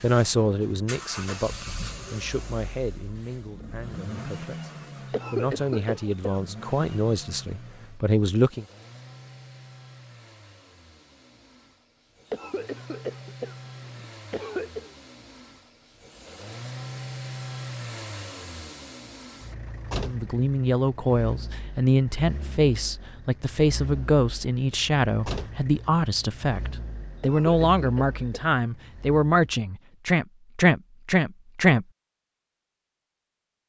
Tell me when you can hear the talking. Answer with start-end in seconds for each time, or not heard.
0.0-4.7, 5.3-8.7, 20.0-31.9.